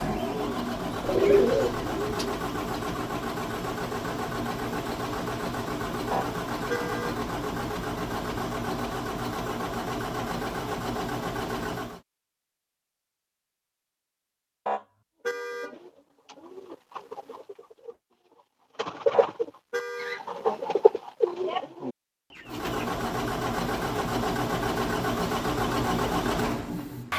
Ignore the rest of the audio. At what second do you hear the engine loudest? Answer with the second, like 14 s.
26 s.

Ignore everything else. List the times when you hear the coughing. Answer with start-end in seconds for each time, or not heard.
not heard.